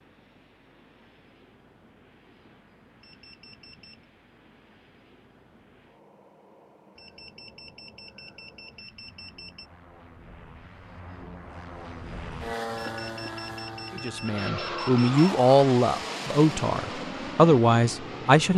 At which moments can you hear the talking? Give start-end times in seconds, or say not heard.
13.9-18.5.